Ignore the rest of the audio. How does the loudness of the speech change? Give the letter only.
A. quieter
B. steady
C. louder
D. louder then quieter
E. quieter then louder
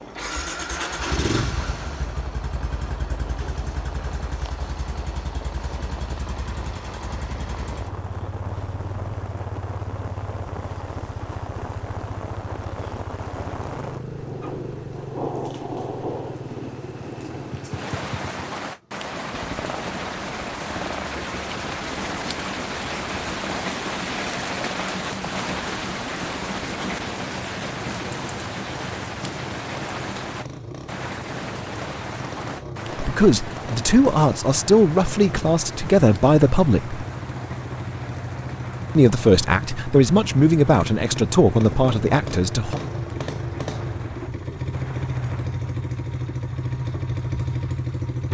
B.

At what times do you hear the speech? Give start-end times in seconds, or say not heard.
33.0-37.0, 39.0-42.8.